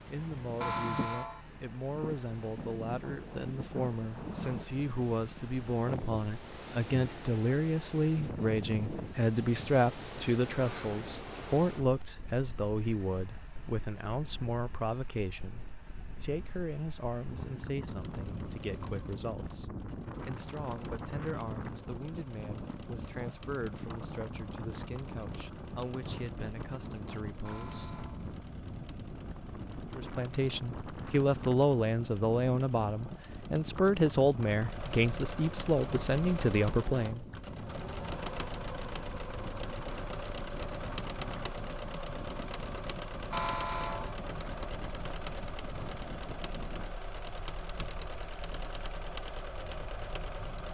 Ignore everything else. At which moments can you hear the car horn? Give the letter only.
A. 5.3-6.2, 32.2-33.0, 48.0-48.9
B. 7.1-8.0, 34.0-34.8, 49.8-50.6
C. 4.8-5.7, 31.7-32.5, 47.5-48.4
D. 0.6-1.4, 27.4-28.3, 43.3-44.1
D.